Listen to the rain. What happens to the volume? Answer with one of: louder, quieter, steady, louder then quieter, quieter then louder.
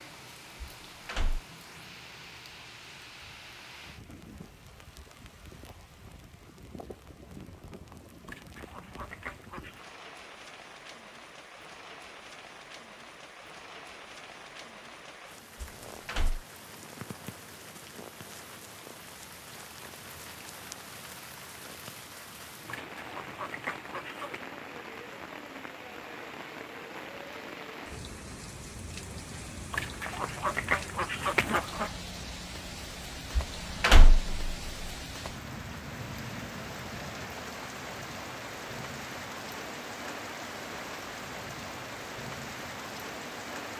louder.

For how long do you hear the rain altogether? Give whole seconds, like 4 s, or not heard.
44 s.